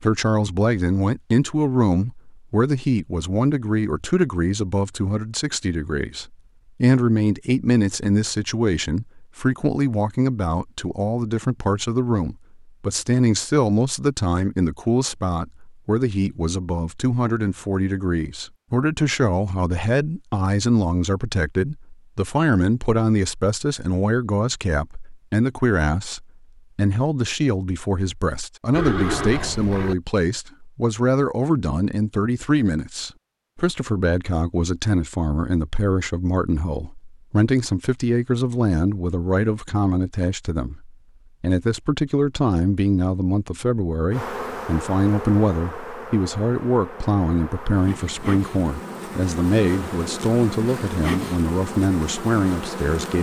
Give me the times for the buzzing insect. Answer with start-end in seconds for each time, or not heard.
44.1-53.1.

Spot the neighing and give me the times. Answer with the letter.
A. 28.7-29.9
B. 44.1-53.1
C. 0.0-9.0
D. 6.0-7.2
A.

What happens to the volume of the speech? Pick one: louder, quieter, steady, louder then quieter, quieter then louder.
steady.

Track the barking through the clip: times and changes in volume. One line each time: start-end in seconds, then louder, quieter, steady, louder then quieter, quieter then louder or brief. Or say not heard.
not heard.